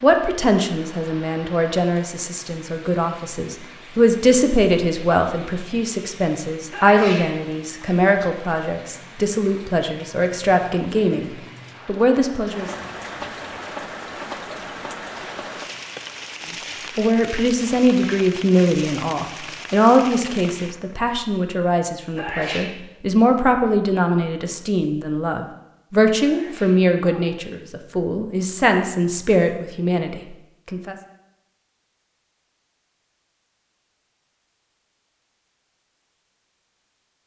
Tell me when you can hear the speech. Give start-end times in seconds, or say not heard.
0.0-12.7, 16.9-30.9.